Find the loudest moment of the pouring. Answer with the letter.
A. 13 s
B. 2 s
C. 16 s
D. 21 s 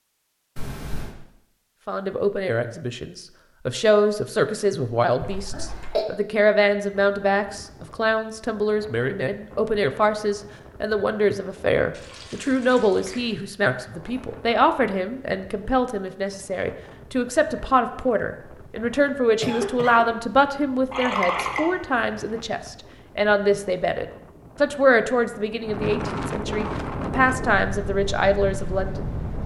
D.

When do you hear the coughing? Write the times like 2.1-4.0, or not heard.
5.2-6.0, 19.4-20.1.